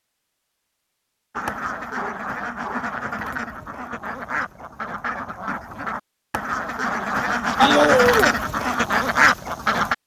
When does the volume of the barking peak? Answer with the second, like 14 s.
8 s.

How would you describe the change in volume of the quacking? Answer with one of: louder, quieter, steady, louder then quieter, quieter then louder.
louder.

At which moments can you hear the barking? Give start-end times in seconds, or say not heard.
1.4-2.9, 7.5-8.4.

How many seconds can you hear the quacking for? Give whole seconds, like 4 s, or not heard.
9 s.